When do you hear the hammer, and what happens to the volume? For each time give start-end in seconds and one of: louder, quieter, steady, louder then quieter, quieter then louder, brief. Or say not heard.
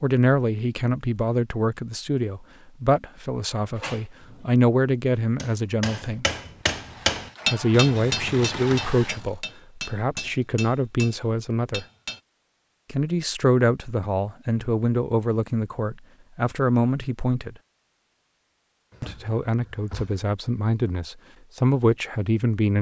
5.2-12.2 louder then quieter.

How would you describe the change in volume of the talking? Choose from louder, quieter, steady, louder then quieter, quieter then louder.
steady.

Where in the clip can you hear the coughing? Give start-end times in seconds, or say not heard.
not heard.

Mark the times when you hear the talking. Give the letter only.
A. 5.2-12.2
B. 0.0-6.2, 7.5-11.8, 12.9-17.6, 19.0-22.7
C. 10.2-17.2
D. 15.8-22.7
B.